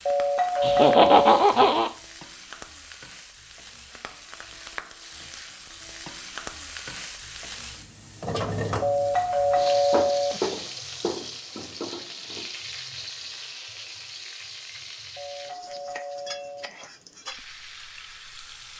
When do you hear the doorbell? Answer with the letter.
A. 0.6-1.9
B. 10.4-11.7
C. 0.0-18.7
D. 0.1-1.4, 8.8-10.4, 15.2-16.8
D.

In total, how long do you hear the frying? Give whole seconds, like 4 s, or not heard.
19 s.